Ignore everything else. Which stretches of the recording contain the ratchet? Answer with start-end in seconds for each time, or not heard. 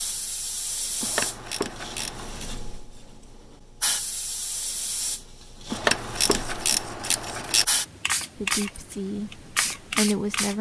1.0-2.5, 5.7-7.7.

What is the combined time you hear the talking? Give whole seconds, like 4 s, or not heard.
2 s.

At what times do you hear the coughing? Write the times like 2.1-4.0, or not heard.
not heard.